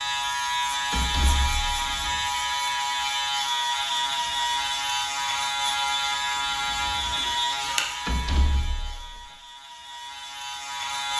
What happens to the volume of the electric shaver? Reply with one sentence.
The volume of the electric shaver goes down.